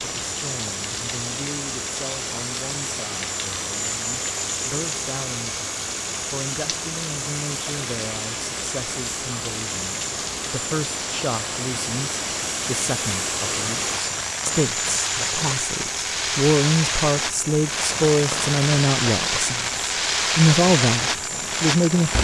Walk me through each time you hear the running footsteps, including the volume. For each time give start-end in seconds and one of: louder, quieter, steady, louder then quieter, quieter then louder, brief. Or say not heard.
not heard.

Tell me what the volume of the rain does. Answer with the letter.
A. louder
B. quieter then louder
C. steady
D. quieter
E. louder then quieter
A.